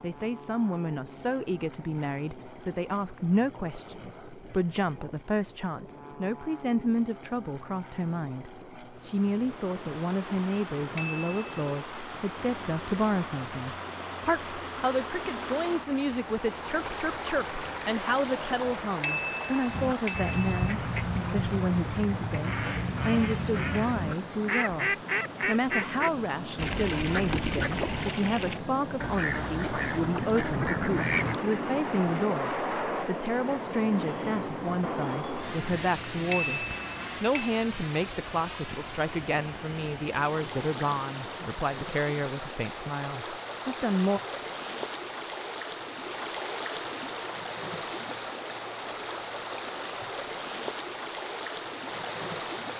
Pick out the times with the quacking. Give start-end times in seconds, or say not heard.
19.6-31.4.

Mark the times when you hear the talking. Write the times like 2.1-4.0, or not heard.
0.0-44.2.